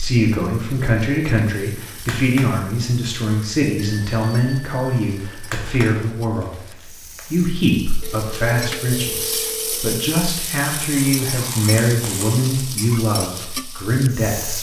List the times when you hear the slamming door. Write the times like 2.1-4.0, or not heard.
not heard.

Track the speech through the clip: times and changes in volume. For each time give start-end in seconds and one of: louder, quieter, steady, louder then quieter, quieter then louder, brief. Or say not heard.
0.0-14.5 steady.